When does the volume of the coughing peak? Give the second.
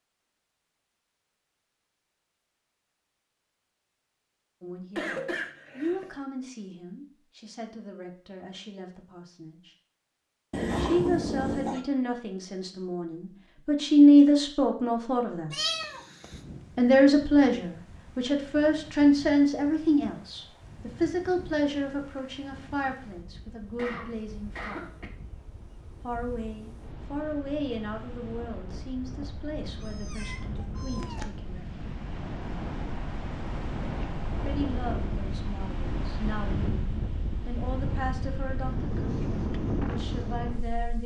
5 s.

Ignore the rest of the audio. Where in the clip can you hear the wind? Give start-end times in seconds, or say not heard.
16.2-41.0.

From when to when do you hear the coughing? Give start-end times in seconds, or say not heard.
5.0-6.2, 23.8-25.1.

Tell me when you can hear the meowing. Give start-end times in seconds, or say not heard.
10.5-11.8, 15.5-16.4, 29.9-31.2.